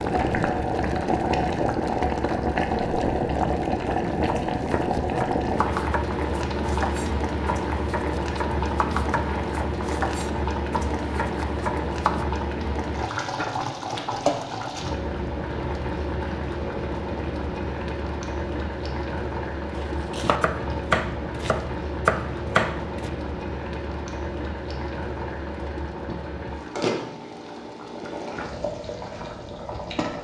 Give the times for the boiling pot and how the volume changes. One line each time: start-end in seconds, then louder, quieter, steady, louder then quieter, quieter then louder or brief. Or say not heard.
0.0-30.1 quieter.